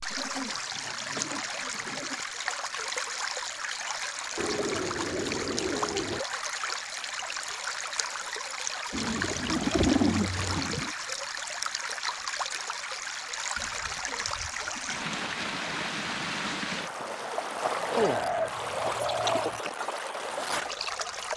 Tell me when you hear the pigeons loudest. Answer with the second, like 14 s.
10 s.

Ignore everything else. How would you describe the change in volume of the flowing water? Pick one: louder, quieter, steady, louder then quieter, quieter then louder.
steady.